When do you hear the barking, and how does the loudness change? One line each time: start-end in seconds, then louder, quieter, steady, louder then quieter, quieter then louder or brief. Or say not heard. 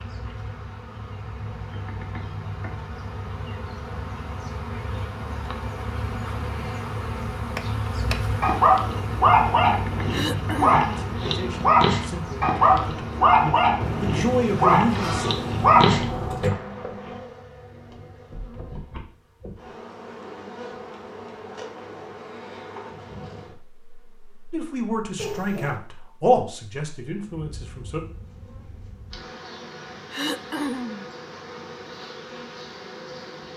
8.4-17.1 steady.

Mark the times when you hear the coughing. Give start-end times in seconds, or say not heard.
10.1-10.8, 30.1-31.1.